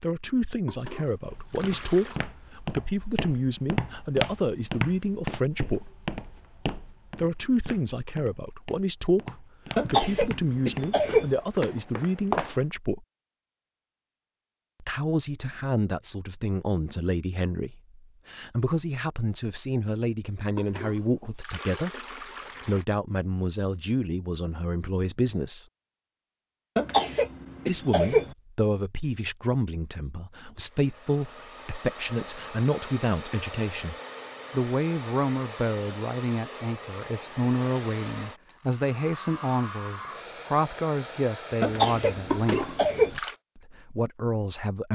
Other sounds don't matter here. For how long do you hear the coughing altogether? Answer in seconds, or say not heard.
5 s.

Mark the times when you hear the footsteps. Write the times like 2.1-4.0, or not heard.
1.2-12.8.